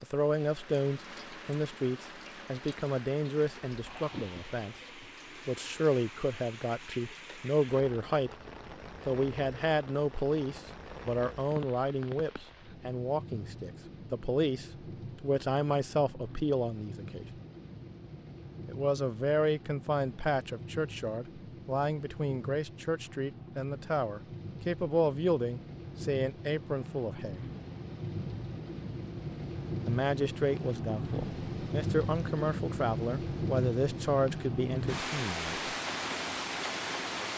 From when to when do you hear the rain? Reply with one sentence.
You can hear the rain from 0.0 to 37.3 s.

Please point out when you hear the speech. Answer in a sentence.
The speech can be heard from 0.0 to 4.8 s, from 5.5 to 8.3 s, from 9.1 to 17.2 s, from 18.6 to 27.4 s and from 29.9 to 35.7 s.